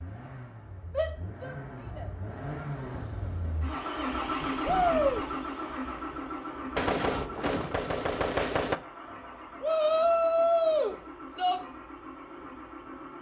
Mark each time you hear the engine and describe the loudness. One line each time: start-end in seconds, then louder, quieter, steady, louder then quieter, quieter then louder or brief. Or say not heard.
0.0-13.1 louder then quieter.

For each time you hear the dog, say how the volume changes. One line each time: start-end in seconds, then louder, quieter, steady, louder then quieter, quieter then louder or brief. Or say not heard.
not heard.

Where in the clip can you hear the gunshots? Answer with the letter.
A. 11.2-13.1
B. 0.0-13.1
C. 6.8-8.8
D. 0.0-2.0
C.